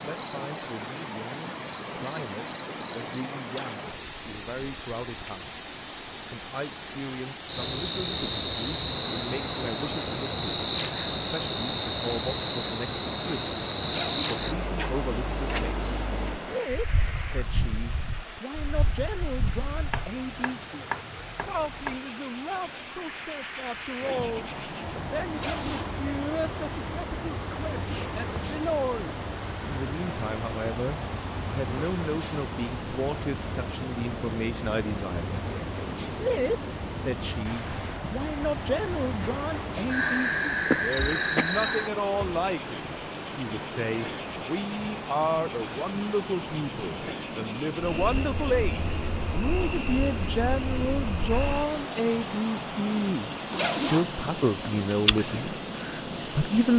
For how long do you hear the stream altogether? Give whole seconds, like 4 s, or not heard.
57 s.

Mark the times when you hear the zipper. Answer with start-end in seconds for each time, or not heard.
13.8-14.5, 25.3-26.0, 53.5-54.1.